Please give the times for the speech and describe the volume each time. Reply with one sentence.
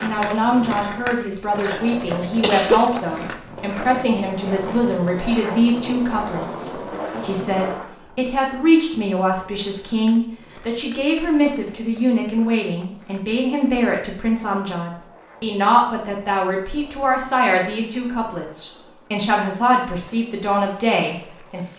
The speech can be heard from 0.0 to 21.7 s, at a steady volume.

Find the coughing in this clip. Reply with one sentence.
You can hear the coughing from 1.6 to 3.0 s.